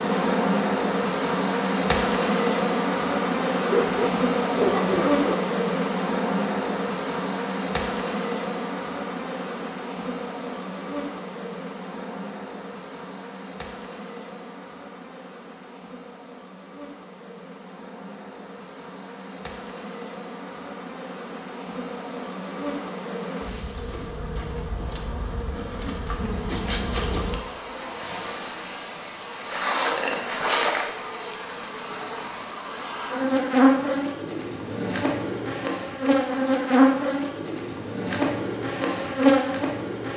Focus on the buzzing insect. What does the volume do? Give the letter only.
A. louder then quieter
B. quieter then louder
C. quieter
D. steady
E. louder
B.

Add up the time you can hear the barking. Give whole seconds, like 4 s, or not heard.
2 s.